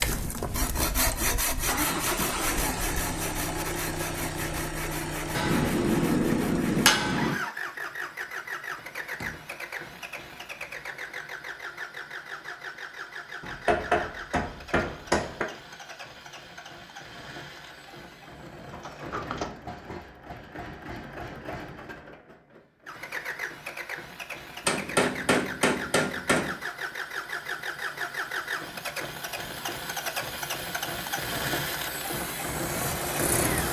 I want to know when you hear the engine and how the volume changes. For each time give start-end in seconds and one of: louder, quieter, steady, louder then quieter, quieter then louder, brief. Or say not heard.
0.0-33.6 quieter then louder.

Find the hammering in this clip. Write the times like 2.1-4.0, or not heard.
5.3-7.3, 13.4-15.4, 24.6-26.6.